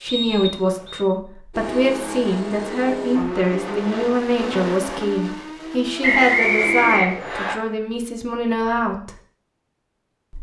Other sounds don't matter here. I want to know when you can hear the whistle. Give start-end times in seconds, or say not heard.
0.1-1.1, 6.0-7.5.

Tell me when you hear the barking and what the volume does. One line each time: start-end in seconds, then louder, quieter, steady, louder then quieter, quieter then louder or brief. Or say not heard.
not heard.